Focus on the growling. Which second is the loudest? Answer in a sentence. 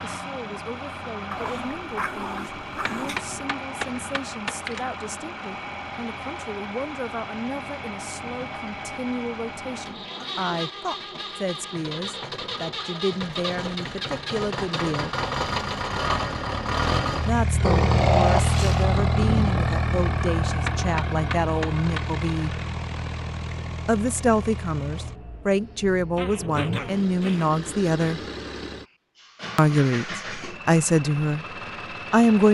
The volume of the growling peaks at 18 seconds.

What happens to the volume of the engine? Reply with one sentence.
The volume of the engine goes up, then down.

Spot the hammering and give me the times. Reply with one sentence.
The hammering can be heard from 2.9 to 4.8 s and from 20.6 to 22.1 s.